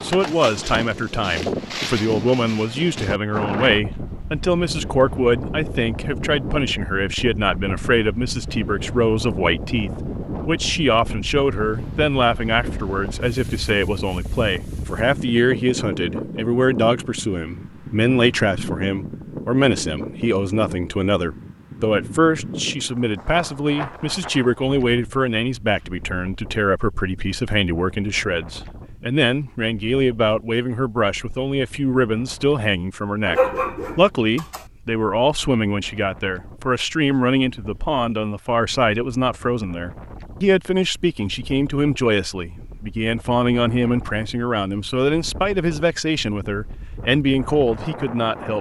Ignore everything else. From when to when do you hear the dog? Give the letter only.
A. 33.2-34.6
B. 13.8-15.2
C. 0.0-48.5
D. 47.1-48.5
A.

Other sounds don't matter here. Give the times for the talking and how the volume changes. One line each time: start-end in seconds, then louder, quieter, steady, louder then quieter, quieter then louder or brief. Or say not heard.
0.0-48.5 steady.